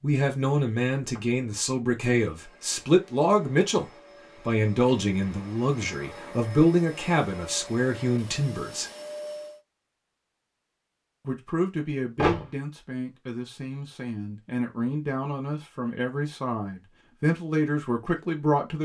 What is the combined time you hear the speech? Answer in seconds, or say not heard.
16 s.